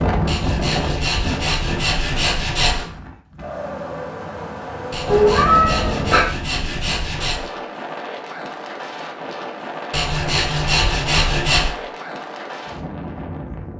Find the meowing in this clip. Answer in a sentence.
The meowing can be heard from 5.0 to 6.2 s.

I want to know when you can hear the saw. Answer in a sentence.
You can hear the saw from 0.2 to 2.9 s, from 4.9 to 7.5 s and from 9.9 to 11.8 s.